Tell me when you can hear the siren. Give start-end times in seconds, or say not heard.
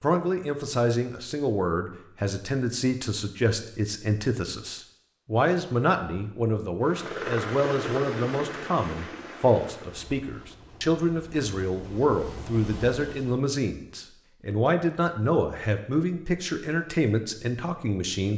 not heard.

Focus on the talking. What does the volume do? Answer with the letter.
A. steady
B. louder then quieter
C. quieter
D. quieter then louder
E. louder
A.